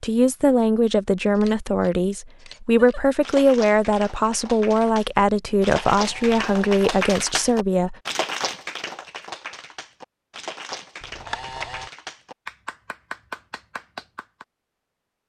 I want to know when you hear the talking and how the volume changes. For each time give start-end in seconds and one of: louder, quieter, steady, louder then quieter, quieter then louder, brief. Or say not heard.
0.0-8.0 steady.